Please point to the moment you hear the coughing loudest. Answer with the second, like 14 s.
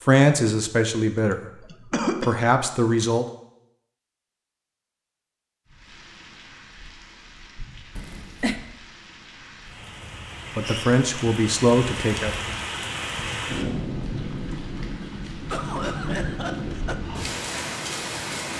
2 s.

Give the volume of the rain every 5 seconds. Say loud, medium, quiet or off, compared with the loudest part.
off, quiet, loud, loud.